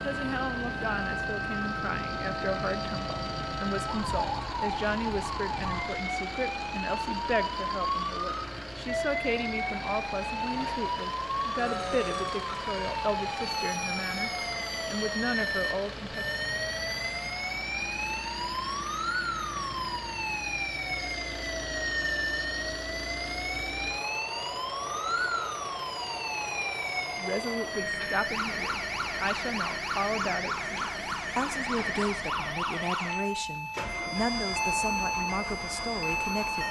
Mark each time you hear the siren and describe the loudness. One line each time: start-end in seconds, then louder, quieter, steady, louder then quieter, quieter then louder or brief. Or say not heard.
0.0-36.6 steady.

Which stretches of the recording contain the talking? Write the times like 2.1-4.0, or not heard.
0.0-16.2, 27.1-36.6.